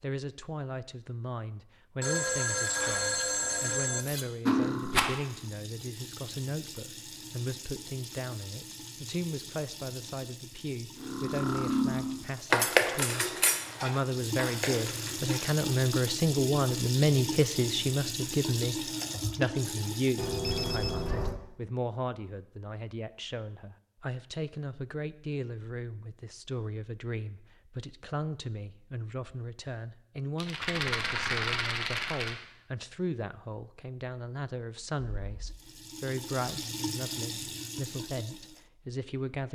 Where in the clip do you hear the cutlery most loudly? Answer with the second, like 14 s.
13 s.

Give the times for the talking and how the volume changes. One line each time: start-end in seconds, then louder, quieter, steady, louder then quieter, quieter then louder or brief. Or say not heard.
0.0-39.5 louder then quieter.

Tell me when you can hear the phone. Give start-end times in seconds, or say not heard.
2.0-4.0, 20.1-21.4, 35.1-35.6.